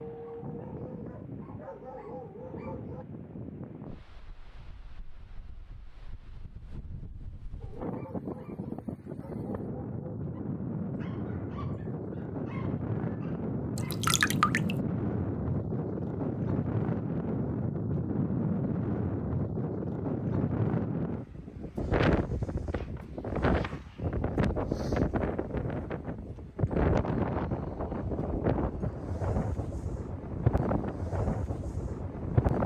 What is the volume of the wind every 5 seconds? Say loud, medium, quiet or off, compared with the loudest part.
quiet, medium, loud, loud, loud, loud, loud.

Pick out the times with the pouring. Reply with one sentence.
You can hear the pouring from 13.8 to 14.8 s.